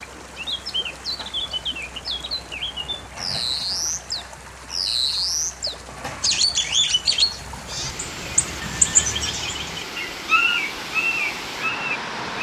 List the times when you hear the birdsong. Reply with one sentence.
The birdsong can be heard from 0.0 to 12.3 s.